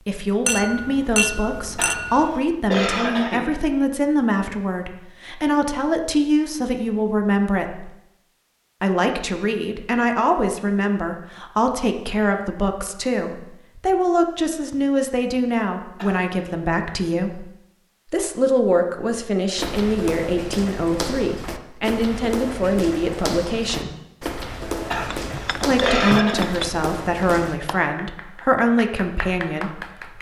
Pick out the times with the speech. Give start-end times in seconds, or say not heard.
0.1-7.9, 8.8-17.4, 18.1-23.9, 25.6-30.1.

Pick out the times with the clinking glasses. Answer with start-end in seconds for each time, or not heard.
0.5-2.4, 25.1-26.7.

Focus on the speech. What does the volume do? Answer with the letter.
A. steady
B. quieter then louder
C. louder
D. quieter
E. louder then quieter
A.